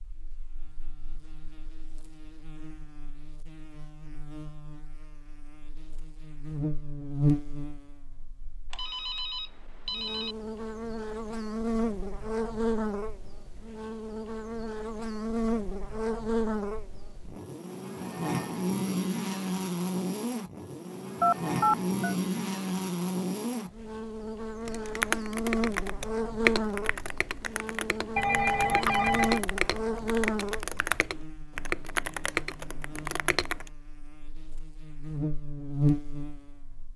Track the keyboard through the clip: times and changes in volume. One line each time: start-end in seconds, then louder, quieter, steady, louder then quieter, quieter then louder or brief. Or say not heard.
24.6-33.7 quieter then louder.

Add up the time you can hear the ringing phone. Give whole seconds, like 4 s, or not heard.
4 s.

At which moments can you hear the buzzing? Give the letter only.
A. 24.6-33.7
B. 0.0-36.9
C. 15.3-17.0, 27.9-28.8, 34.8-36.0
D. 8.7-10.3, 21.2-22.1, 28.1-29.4
B.